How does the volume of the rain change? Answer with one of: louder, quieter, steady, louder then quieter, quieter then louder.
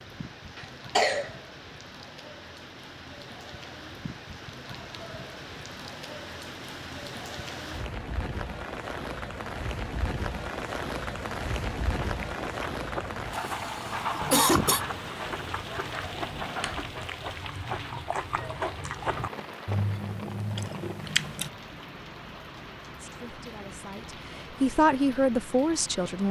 louder then quieter.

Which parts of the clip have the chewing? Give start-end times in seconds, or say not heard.
11.8-21.5.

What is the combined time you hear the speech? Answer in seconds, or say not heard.
3 s.